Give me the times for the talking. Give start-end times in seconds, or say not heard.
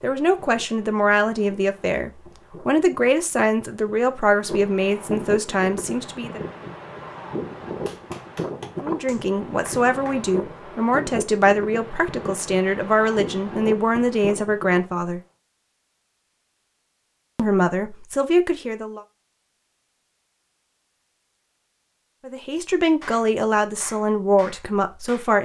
0.0-6.4, 8.8-15.2, 17.4-19.1, 22.2-25.4.